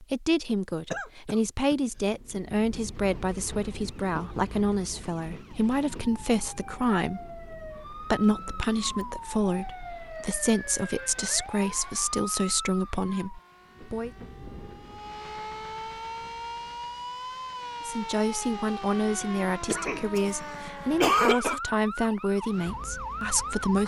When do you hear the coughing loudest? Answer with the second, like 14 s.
21 s.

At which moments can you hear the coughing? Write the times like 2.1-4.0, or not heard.
0.9-1.8, 8.2-9.1, 19.6-21.6.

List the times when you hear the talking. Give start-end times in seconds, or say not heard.
0.0-14.1, 17.9-23.8.